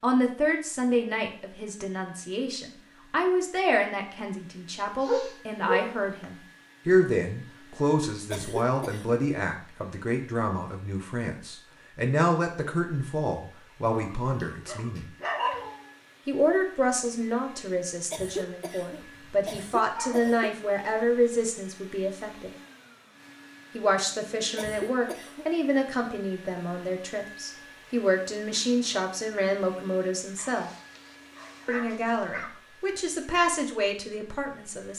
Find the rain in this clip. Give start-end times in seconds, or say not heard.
not heard.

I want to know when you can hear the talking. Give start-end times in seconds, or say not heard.
0.0-15.1, 16.2-22.5, 23.7-30.7, 31.6-34.9.